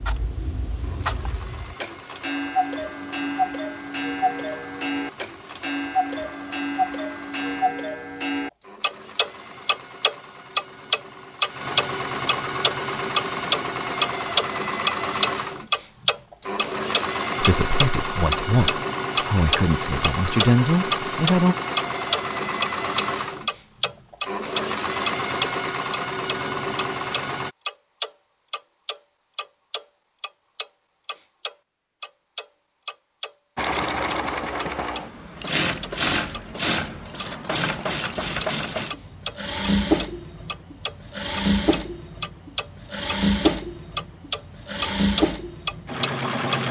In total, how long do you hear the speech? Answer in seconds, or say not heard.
4 s.